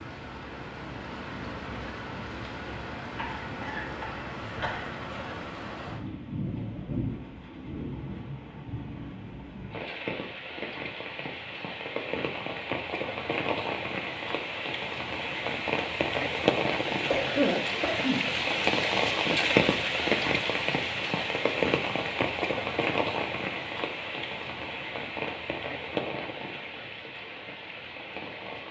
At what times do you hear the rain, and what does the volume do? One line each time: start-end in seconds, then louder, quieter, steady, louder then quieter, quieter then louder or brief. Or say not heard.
0.0-28.6 louder then quieter.